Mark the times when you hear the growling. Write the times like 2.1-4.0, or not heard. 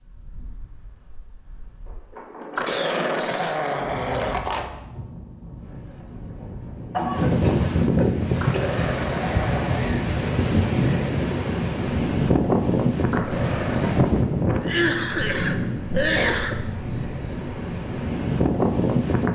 2.5-4.7, 8.4-9.9, 13.1-14.1.